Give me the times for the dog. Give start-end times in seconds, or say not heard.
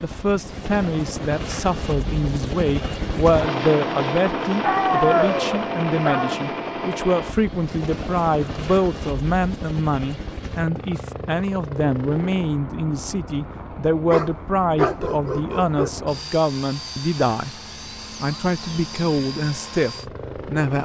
4.6-6.4, 14.1-15.9.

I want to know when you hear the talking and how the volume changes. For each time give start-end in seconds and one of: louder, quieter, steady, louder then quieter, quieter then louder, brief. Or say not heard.
0.0-17.6 steady
18.2-20.8 brief.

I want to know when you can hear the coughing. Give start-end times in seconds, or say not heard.
not heard.